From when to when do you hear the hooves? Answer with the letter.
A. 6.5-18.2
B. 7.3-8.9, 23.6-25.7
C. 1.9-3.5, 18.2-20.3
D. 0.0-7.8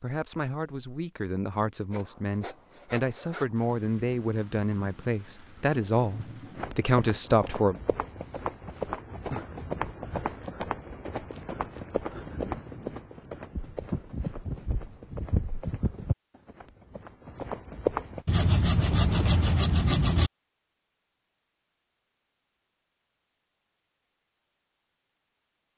A.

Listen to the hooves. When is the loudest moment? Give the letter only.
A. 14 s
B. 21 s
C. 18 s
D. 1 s
C.